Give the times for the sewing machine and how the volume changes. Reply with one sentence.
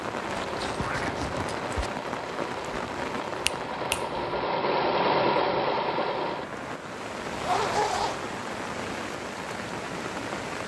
You can hear the sewing machine from 0.0 to 6.5 s, getting louder.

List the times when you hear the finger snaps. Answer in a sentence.
The finger snaps can be heard from 3.5 to 4.5 s.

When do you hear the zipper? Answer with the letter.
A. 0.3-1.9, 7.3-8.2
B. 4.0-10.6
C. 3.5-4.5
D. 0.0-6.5
A.